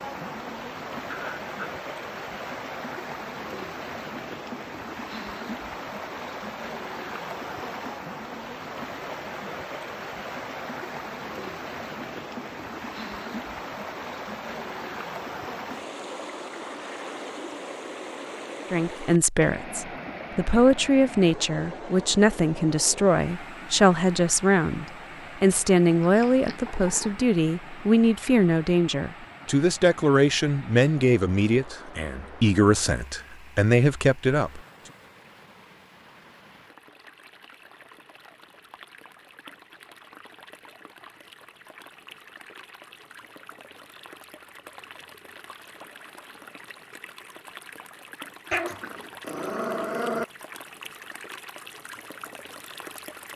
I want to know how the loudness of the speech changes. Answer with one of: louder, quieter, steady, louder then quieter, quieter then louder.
steady.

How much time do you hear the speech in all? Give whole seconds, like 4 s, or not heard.
16 s.